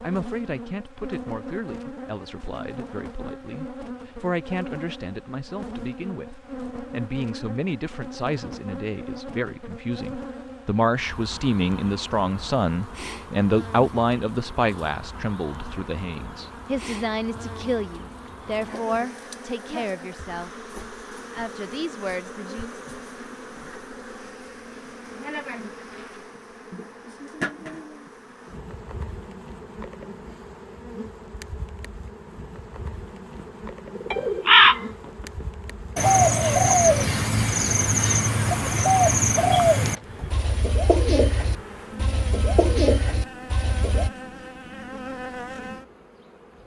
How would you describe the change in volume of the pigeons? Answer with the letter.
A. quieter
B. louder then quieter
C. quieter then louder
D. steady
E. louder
A.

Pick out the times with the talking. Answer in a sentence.
You can hear the talking from 0.0 to 20.5 s and from 21.3 to 22.8 s.